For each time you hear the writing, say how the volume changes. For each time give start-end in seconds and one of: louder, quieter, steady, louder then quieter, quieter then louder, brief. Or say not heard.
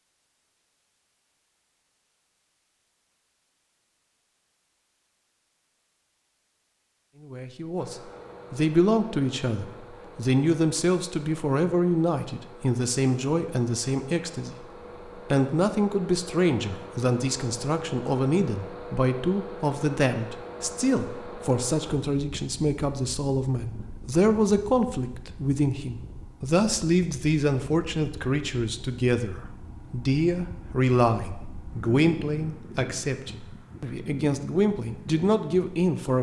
not heard.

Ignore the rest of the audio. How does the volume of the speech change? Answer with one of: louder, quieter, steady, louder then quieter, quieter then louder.
steady.